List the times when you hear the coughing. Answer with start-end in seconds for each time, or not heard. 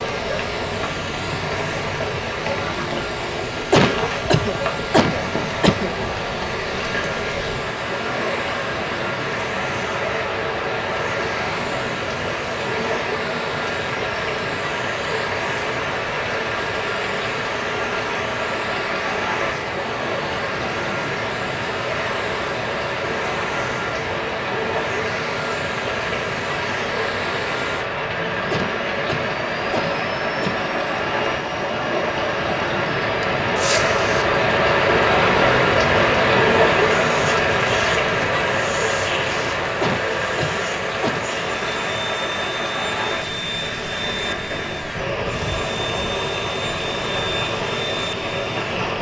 3.7-5.9, 28.5-30.7, 39.8-41.4.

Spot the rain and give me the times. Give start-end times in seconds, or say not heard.
0.0-48.9.